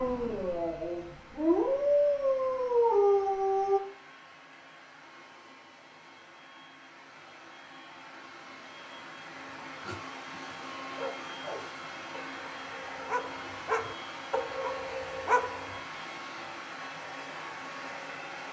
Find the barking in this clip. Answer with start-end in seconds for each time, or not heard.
0.0-3.8, 9.7-15.8.